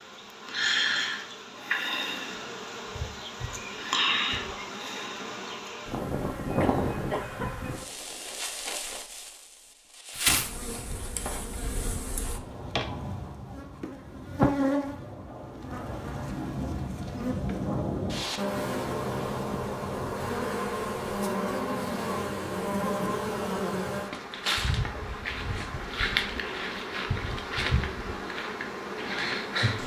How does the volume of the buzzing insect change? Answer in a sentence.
The volume of the buzzing insect stays about the same.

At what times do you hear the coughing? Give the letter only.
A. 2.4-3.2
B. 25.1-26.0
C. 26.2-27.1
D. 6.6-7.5
D.